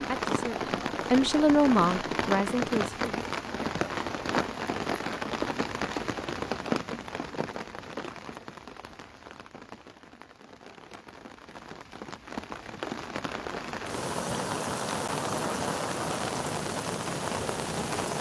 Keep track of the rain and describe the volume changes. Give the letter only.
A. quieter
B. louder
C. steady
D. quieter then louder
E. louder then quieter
D.